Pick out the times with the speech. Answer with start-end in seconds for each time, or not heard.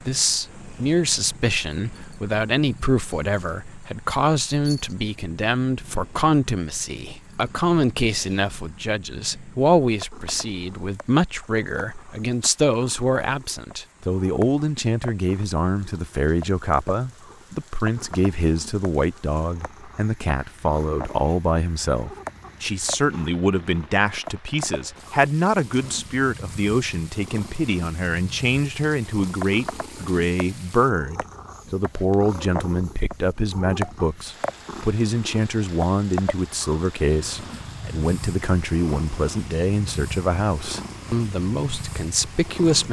0.0-42.8.